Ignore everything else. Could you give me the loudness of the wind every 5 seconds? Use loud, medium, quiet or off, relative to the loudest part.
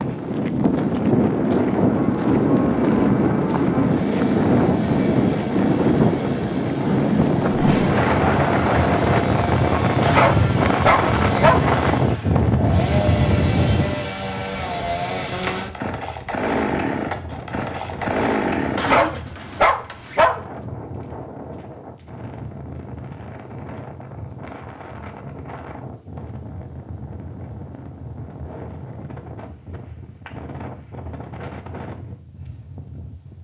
loud, loud, loud, quiet, quiet, quiet, quiet.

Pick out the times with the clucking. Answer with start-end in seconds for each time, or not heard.
not heard.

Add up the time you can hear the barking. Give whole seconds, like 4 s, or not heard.
3 s.